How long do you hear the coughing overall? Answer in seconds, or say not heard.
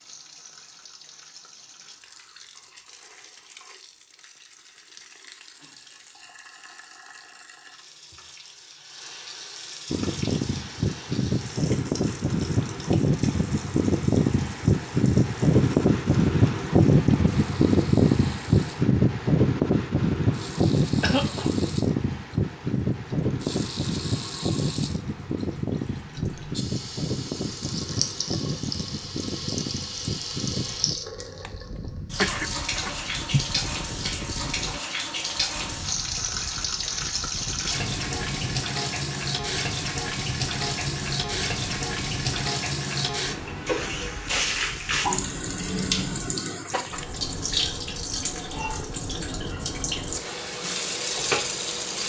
2 s.